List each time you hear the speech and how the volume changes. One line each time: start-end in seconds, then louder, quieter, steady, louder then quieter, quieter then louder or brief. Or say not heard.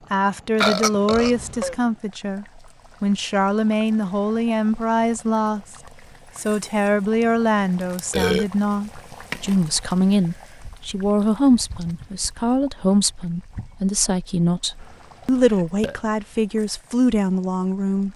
0.1-18.1 steady.